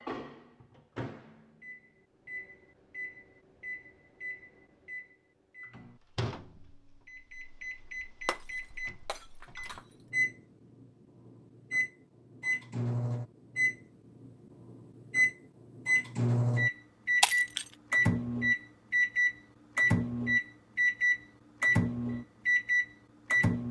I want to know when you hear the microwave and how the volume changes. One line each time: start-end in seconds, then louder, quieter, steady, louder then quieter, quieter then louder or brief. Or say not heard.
0.0-23.6 louder.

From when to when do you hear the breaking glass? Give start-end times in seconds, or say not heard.
8.2-9.8, 17.2-17.7.